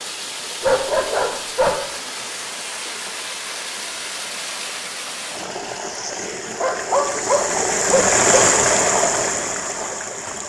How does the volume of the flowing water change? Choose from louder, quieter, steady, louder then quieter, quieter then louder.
louder.